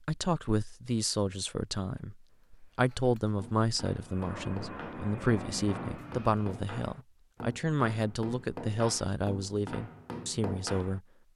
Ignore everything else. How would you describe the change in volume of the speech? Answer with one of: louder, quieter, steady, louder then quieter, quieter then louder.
steady.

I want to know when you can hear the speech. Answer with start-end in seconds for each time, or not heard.
0.1-11.0.